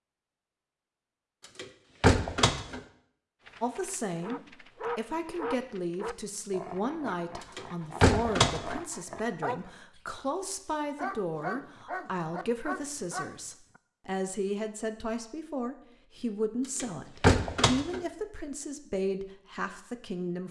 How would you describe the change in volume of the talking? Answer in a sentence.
The loudness of the talking stays about the same.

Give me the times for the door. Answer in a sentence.
You can hear the door from 1.6 to 2.8 s, from 7.5 to 8.8 s and from 16.8 to 18.0 s.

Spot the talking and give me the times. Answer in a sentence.
You can hear the talking from 3.6 to 20.4 s.